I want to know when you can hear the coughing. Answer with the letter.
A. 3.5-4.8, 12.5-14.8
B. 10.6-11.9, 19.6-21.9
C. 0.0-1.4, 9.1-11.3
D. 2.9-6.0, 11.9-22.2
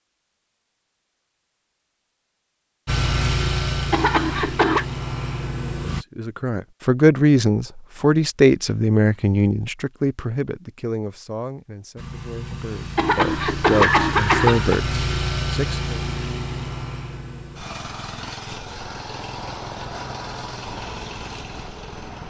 A.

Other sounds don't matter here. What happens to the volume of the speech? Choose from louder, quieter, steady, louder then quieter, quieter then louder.
quieter then louder.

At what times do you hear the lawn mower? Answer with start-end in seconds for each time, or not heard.
2.9-6.0, 11.9-22.2.